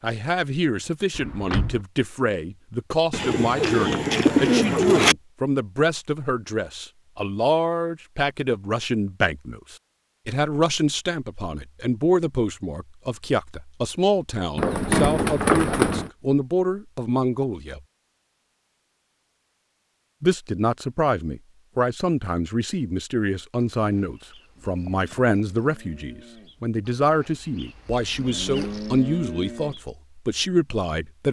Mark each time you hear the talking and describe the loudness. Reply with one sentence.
You can hear the talking from 0.0 to 17.8 s, at a steady volume; and from 20.2 to 31.2 s, at a steady volume.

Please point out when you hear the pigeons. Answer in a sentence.
You can hear the pigeons from 3.1 to 5.2 s, from 14.6 to 16.1 s and from 24.6 to 25.4 s.